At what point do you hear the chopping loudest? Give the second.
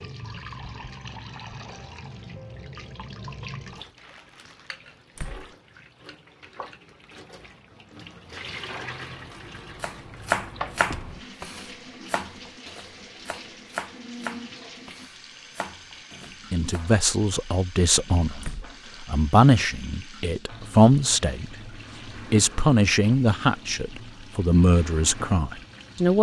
10 s.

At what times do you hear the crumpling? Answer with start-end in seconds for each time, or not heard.
4.0-5.0.